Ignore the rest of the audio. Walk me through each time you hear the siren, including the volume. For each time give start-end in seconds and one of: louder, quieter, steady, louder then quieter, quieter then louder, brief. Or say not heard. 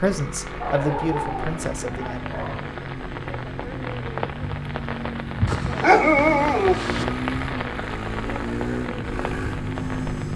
not heard.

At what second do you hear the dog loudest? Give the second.
6 s.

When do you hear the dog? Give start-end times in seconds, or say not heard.
0.6-2.7, 5.5-7.0.